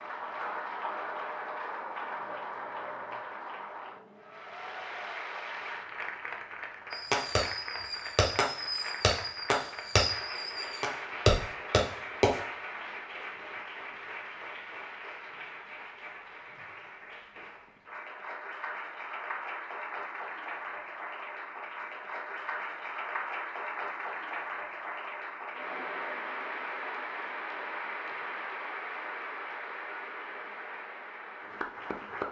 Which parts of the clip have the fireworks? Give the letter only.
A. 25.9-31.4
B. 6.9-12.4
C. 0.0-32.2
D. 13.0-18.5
B.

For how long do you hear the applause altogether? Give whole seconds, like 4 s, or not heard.
32 s.